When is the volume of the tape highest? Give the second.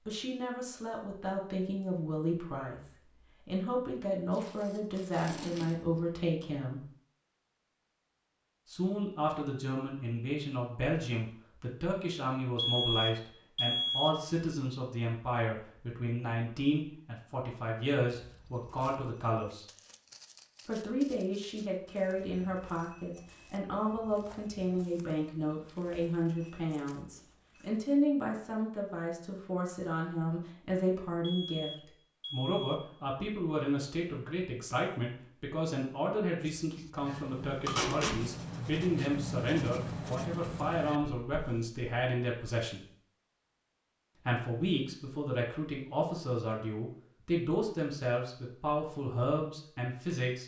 38 s.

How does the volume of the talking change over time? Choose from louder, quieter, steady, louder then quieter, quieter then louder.
steady.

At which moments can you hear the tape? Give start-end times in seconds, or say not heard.
4.3-5.7, 37.6-38.1.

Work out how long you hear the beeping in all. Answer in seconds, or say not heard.
3 s.